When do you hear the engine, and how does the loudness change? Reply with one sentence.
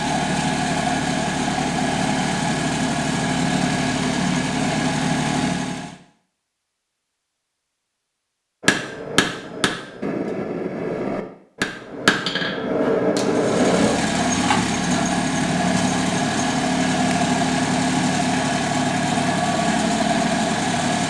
The engine can be heard from 0.0 to 6.0 s, at a steady volume; and from 13.2 to 21.0 s, at a steady volume.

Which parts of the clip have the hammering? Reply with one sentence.
The hammering can be heard from 8.6 to 13.9 s.